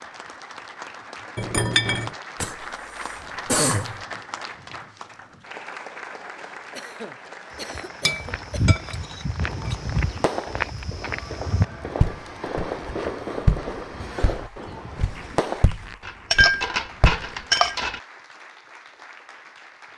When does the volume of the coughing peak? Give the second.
4 s.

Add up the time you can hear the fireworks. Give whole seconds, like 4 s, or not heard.
6 s.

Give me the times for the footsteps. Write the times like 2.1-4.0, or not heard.
7.6-17.3.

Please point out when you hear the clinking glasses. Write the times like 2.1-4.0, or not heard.
1.4-2.1, 8.1-9.8, 16.0-18.0.